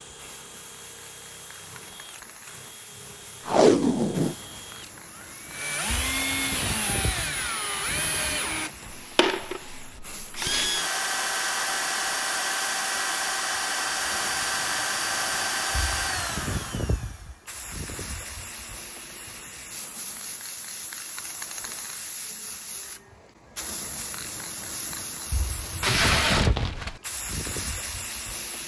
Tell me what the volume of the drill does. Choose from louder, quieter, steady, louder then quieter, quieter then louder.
louder.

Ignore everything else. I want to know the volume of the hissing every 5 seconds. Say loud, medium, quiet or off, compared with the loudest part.
quiet, medium, medium, medium, medium, loud.